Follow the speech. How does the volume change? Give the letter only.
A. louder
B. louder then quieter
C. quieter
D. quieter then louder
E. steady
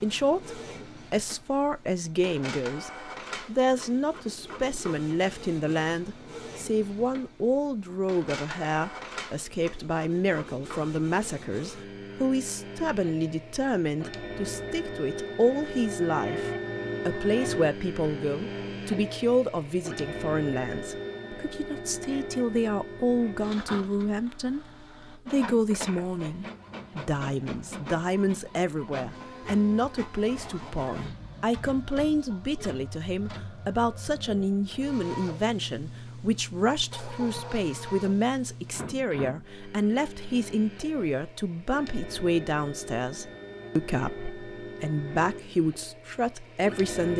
E.